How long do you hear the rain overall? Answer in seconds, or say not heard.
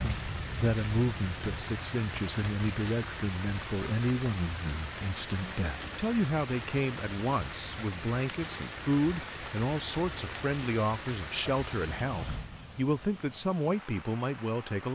15 s.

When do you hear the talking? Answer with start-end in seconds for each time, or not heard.
0.0-14.9.